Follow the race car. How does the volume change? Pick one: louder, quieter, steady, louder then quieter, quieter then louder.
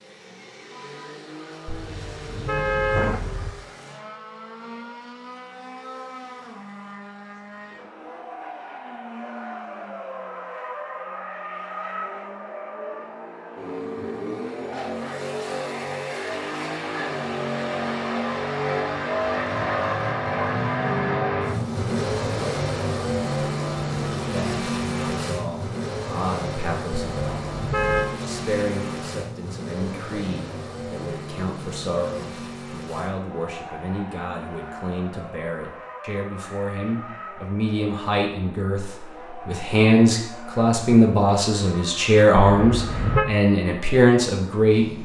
louder then quieter.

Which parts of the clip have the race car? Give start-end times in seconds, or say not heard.
0.0-45.0.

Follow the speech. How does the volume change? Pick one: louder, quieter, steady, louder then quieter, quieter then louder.
louder.